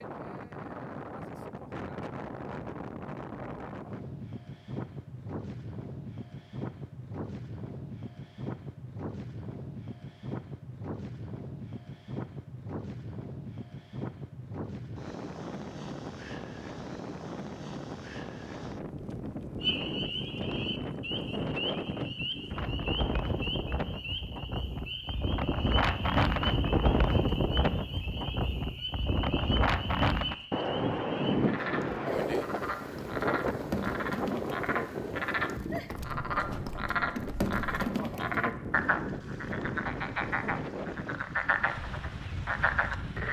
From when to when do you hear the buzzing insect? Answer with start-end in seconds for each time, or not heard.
not heard.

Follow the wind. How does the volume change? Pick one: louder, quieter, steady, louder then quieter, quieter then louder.
louder then quieter.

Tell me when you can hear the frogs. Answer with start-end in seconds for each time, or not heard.
19.6-43.2.